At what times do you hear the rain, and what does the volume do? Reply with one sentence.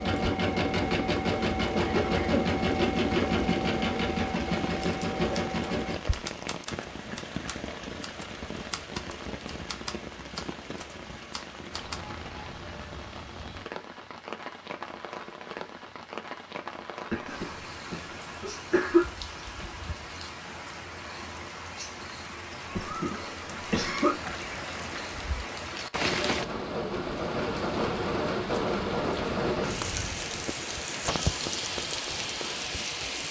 The rain can be heard from 0.0 to 33.2 s, getting louder.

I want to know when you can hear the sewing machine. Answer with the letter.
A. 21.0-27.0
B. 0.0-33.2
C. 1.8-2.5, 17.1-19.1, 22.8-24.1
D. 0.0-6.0
D.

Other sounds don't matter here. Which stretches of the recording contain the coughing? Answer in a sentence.
You can hear the coughing from 1.8 to 2.5 s, from 17.1 to 19.1 s and from 22.8 to 24.1 s.